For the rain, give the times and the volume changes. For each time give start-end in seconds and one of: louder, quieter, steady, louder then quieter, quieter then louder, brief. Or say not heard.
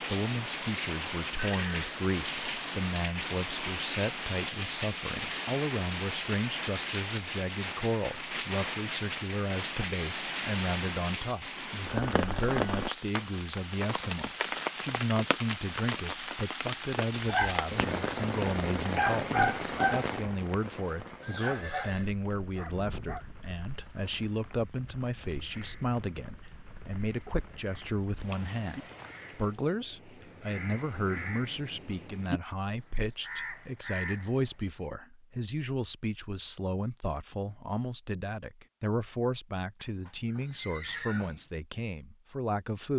0.0-29.6 quieter.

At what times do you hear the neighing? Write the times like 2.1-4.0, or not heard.
1.4-1.9, 21.2-22.1, 39.9-41.5.